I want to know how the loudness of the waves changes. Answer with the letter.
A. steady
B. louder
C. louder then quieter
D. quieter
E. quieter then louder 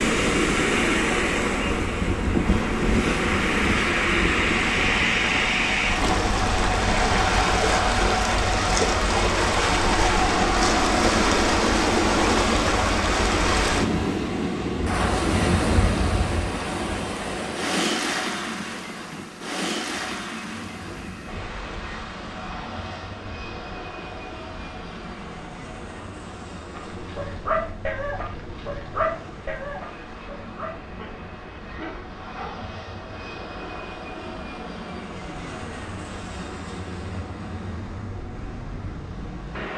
D.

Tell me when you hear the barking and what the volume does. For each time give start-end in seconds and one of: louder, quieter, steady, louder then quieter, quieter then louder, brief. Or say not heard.
26.8-32.5 quieter.